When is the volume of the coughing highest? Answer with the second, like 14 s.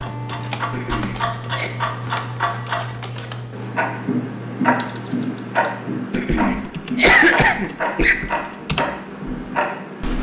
7 s.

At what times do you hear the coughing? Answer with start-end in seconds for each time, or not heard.
0.7-1.7, 6.1-8.2.